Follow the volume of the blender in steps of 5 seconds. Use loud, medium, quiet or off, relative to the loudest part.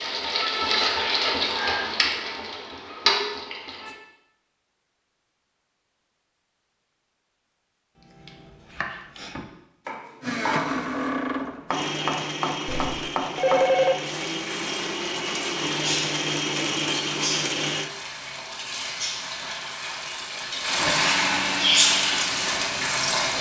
off, off, loud, loud, loud.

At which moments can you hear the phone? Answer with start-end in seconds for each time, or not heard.
12.7-13.9.